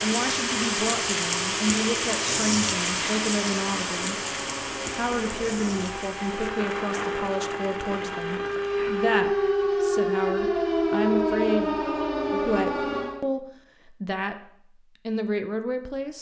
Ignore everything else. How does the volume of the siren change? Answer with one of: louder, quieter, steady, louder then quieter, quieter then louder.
louder.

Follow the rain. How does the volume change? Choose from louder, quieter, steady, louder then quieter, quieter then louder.
quieter.